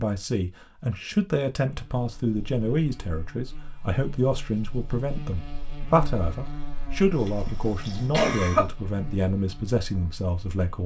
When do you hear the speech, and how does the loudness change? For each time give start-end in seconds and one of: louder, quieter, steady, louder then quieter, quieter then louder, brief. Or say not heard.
0.0-10.8 steady.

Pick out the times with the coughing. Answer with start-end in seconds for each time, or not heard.
7.1-8.7.